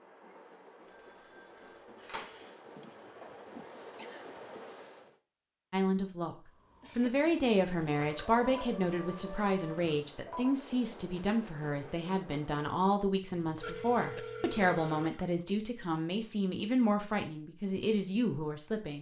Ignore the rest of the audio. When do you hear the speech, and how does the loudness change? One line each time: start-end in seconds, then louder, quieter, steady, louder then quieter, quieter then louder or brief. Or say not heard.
5.7-6.3 brief
7.0-18.9 steady.